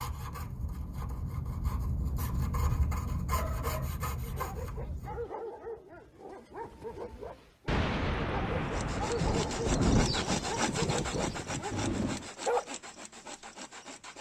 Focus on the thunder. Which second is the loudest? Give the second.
10 s.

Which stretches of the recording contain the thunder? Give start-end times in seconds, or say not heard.
7.7-12.3.